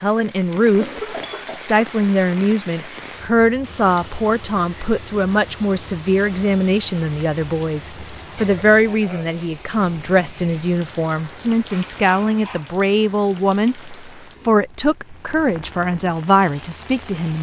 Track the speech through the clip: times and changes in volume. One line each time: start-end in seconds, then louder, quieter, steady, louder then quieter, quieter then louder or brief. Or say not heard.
0.0-17.3 steady.